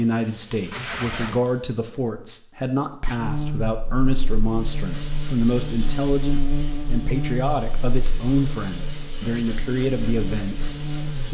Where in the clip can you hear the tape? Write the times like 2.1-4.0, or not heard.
0.7-1.5.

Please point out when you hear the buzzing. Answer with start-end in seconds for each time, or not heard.
3.1-11.2.